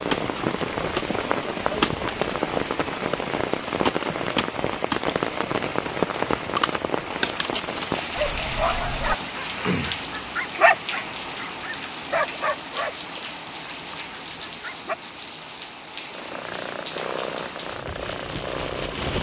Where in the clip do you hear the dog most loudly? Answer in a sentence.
The volume of the dog peaks at 11 seconds.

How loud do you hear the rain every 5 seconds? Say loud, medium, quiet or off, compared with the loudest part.
loud, loud, medium, medium.